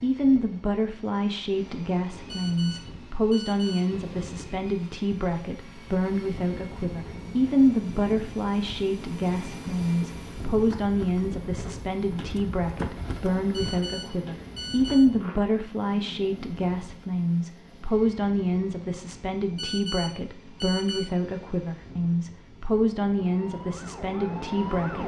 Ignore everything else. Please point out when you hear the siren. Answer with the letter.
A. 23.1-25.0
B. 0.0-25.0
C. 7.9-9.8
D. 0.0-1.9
A.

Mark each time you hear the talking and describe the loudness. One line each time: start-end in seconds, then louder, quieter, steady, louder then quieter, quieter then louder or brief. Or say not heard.
0.0-25.0 steady.